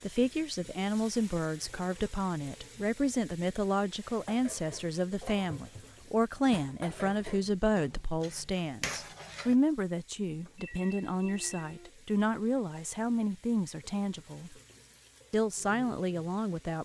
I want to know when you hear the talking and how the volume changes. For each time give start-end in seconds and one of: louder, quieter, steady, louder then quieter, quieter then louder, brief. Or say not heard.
0.0-14.6 steady
15.3-16.8 brief.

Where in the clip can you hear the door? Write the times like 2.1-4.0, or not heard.
not heard.